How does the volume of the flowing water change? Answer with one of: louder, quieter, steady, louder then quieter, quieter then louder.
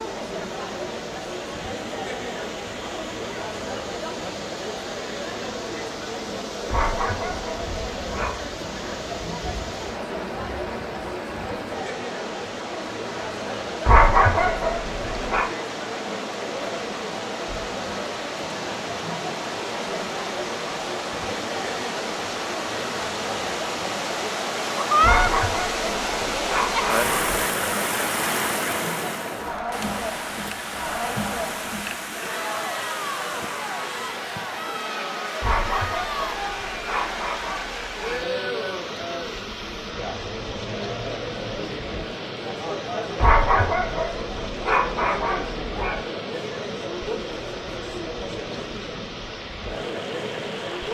louder then quieter.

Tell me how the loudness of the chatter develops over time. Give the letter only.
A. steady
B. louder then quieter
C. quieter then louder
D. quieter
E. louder
A.